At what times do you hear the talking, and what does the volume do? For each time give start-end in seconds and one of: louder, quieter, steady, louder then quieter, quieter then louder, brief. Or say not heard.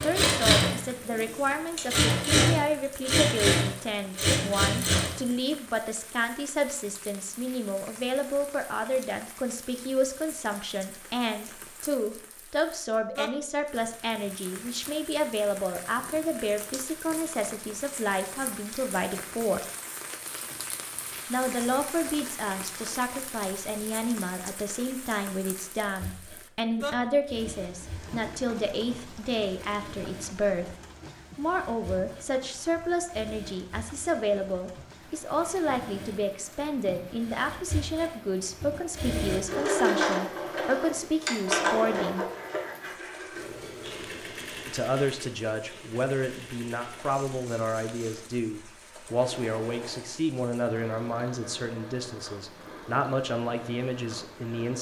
0.0-19.6 steady
21.3-30.7 steady
31.4-42.2 steady
44.6-54.7 steady.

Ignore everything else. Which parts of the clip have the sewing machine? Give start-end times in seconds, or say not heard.
0.0-5.2, 25.9-54.7.